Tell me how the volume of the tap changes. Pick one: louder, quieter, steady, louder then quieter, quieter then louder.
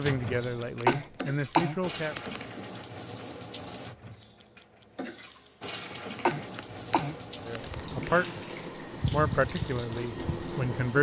louder.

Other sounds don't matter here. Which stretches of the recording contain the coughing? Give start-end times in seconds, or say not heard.
0.8-2.5, 6.2-8.2.